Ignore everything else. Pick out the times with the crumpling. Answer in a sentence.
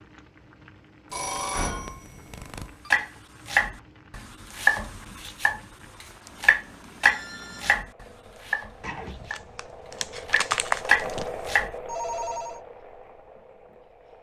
The crumpling can be heard from 8.8 to 11.3 s.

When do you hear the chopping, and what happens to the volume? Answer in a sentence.
You can hear the chopping from 2.9 to 9.4 s, getting quieter; and briefly from 10.2 to 11.7 s.